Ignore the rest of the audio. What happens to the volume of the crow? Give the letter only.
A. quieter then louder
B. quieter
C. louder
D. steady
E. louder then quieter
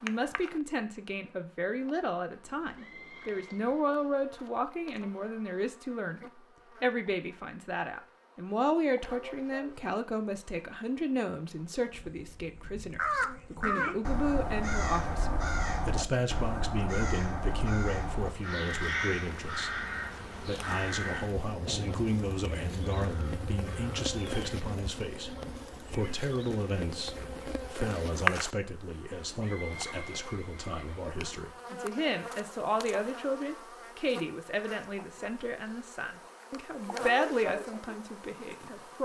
B.